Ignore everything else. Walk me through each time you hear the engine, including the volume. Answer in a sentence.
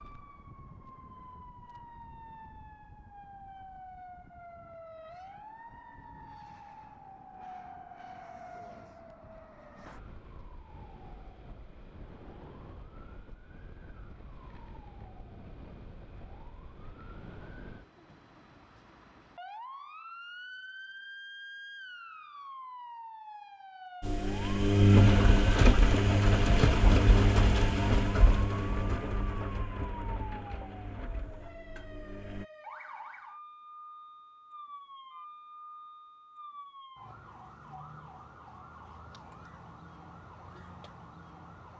The engine can be heard from 24.0 to 32.5 s, getting quieter.